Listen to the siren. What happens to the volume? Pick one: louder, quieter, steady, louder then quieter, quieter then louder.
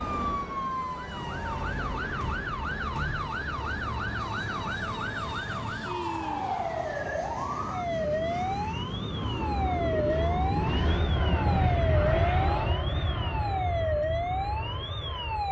steady.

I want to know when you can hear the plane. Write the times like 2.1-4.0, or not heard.
0.0-15.4.